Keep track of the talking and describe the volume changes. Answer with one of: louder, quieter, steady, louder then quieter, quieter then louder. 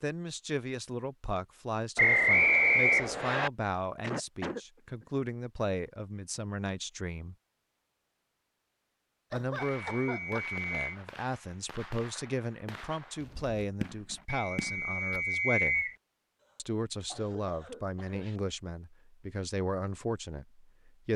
steady.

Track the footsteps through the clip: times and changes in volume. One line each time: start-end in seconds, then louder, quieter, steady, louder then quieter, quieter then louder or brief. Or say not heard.
not heard.